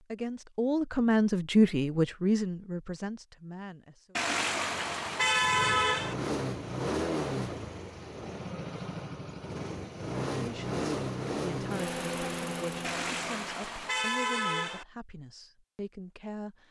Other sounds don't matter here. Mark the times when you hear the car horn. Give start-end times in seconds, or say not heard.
4.2-6.2, 12.8-14.8.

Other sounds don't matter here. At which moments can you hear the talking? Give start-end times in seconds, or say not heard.
0.0-4.2, 10.3-16.6.